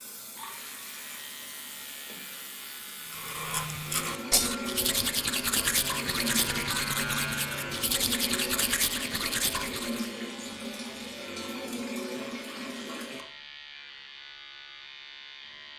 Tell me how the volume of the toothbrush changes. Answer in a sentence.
The volume of the toothbrush stays about the same.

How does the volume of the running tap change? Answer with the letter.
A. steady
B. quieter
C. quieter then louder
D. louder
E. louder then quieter
D.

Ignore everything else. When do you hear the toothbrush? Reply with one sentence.
You can hear the toothbrush from 3.0 to 10.1 s.